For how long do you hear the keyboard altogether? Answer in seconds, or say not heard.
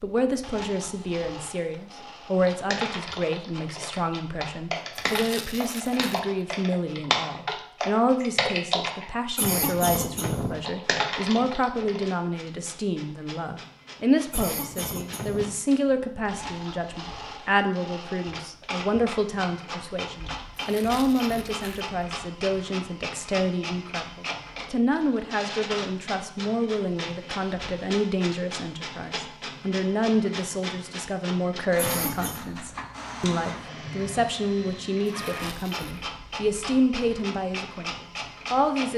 10 s.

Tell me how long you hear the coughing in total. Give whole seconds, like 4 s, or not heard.
3 s.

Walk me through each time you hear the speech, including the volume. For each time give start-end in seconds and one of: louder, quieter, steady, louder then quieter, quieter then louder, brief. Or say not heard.
0.0-38.9 steady.